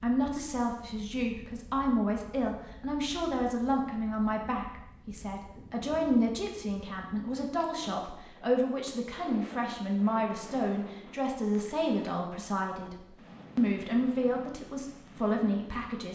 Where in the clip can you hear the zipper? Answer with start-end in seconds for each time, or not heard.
not heard.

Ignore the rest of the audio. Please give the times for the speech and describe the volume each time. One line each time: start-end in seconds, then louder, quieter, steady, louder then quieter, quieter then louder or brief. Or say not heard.
0.0-16.0 steady.